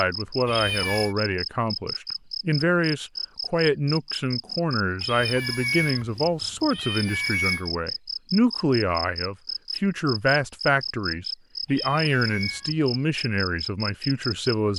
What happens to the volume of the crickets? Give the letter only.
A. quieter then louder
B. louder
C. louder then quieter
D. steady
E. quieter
D.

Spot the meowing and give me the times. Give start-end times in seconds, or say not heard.
0.5-1.1, 5.0-7.7, 11.7-12.8.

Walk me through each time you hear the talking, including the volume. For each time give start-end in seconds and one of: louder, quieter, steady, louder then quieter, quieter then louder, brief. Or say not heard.
0.0-14.7 steady.